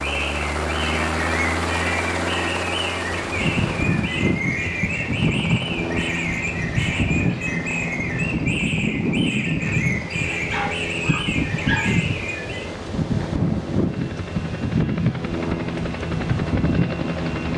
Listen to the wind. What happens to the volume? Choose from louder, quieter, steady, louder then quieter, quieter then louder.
steady.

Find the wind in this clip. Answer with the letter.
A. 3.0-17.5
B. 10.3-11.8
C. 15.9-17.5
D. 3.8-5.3
A.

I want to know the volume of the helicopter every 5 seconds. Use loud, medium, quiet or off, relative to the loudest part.
loud, medium, medium, loud.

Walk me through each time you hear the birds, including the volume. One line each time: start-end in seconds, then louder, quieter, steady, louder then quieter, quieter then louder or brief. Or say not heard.
0.0-12.8 steady.